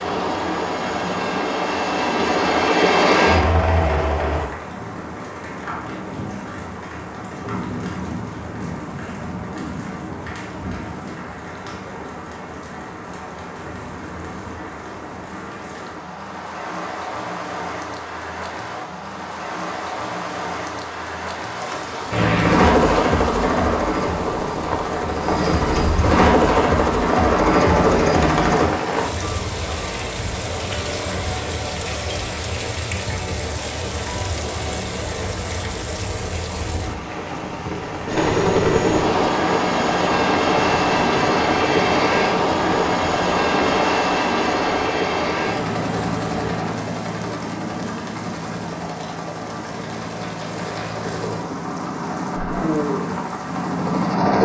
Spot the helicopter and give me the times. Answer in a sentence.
You can hear the helicopter from 0.0 to 4.5 s, from 22.1 to 28.7 s and from 38.0 to 54.4 s.